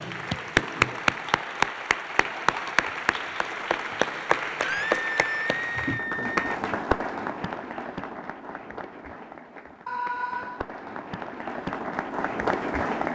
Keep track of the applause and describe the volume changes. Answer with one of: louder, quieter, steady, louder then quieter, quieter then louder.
quieter then louder.